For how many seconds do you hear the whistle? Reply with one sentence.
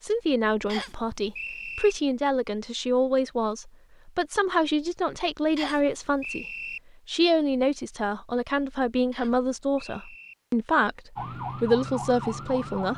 The whistle can be heard for 4 seconds in total.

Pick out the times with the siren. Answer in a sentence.
You can hear the siren from 11.2 to 12.9 s.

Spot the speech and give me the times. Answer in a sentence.
The speech can be heard from 0.0 to 6.5 s and from 7.0 to 12.9 s.